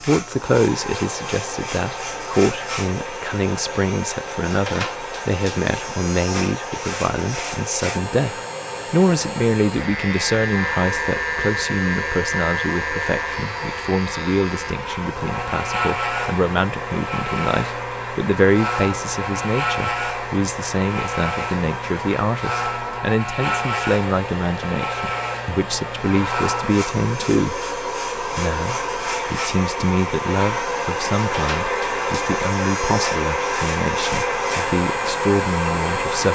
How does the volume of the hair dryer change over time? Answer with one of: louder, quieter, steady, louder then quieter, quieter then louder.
louder.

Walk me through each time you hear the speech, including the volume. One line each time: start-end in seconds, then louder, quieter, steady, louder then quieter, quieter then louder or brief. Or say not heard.
0.0-36.3 steady.